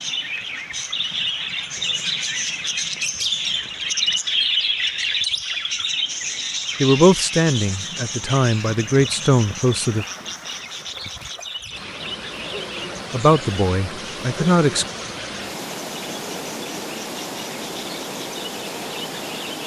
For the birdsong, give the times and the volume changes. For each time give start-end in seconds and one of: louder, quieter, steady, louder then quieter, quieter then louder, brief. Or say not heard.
0.0-19.6 quieter.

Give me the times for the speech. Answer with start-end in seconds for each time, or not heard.
6.8-10.1, 13.1-14.8.